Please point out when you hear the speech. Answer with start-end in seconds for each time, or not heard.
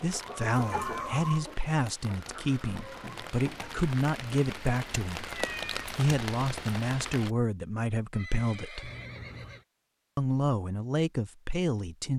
0.0-8.9, 10.2-12.1.